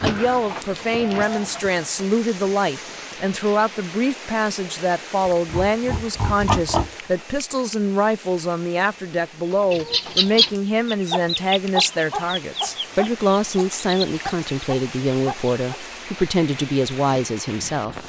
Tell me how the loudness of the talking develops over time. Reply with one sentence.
The loudness of the talking stays about the same.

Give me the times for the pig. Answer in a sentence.
The pig can be heard from 5.2 to 6.9 s.